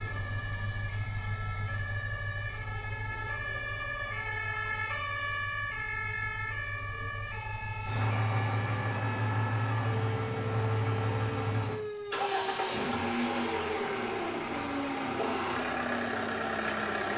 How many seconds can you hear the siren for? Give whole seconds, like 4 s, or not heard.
17 s.